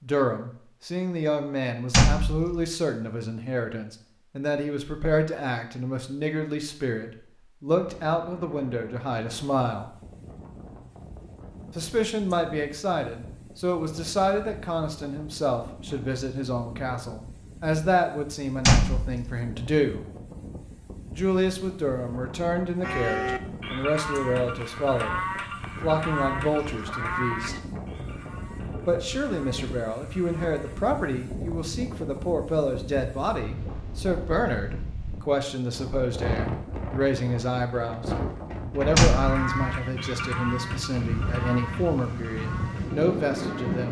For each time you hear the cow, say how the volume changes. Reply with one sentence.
You can hear the cow from 22.8 to 30.9 s, getting quieter; and from 39.1 to 43.8 s, getting quieter.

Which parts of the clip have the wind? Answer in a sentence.
You can hear the wind from 7.8 to 43.8 s.